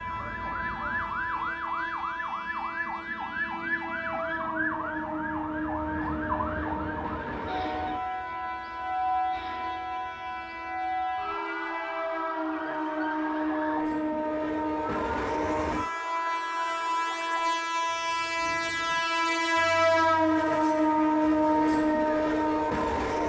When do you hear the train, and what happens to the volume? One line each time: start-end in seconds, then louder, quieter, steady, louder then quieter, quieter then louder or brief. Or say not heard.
0.0-23.2 louder.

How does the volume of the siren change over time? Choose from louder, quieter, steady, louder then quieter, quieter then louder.
quieter.